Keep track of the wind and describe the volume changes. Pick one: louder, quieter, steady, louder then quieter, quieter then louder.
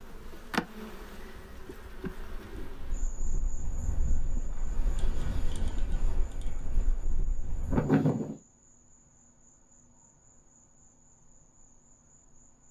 louder.